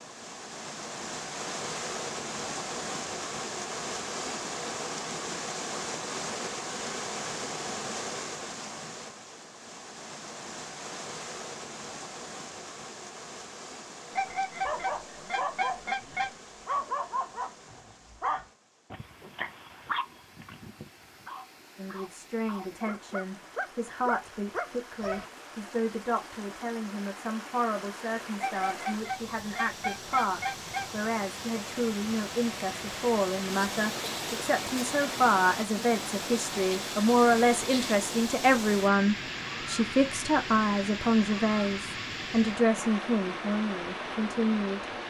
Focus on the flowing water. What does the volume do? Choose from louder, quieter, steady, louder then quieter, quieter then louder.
quieter then louder.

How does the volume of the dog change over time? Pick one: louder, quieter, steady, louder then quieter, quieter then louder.
quieter then louder.